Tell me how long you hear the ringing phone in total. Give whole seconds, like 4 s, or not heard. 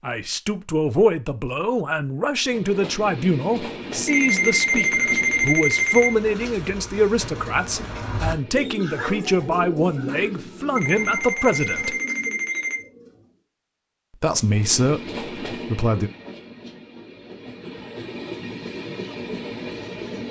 4 s.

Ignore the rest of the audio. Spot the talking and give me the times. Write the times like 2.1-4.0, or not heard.
0.0-11.9, 14.2-16.1.